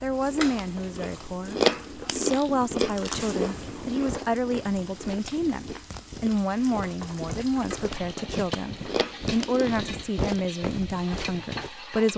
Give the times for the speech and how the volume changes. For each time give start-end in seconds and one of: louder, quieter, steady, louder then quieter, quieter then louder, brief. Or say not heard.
0.0-12.1 steady.